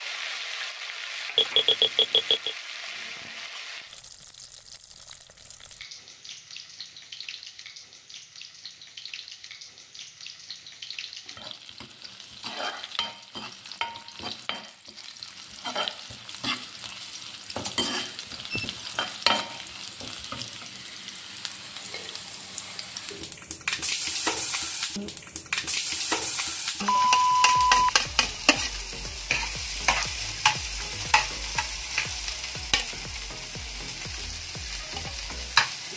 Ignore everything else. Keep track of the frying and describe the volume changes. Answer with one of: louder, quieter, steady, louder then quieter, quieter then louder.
louder.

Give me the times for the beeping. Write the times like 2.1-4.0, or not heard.
1.4-2.5, 17.6-18.6, 26.9-28.4.